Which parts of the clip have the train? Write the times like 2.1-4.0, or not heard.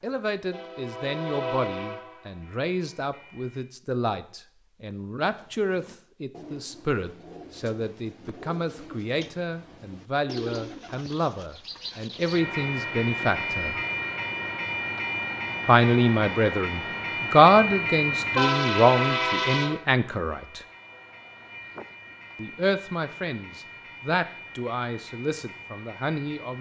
0.1-3.7, 12.2-26.5.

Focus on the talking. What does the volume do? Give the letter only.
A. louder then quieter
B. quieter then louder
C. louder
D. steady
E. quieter
A.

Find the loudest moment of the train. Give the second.
19 s.